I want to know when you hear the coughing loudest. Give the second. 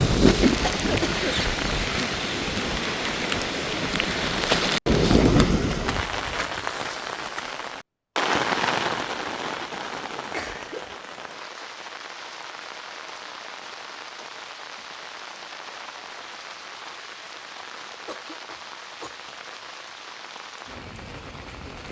1 s.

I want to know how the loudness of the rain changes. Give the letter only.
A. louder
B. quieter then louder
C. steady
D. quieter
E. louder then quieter
D.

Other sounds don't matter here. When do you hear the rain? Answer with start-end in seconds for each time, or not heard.
0.0-21.8.